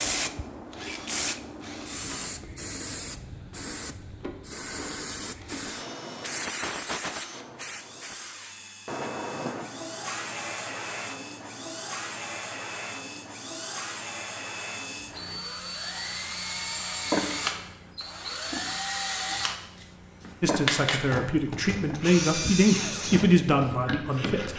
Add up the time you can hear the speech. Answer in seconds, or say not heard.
4 s.